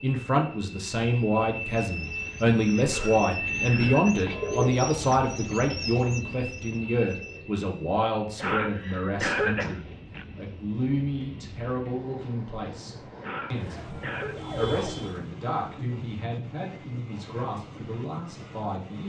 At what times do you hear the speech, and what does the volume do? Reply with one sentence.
The speech can be heard from 0.0 to 19.0 s, getting quieter.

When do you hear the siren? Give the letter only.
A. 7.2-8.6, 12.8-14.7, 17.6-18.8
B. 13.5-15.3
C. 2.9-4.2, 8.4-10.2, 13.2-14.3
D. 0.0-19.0
B.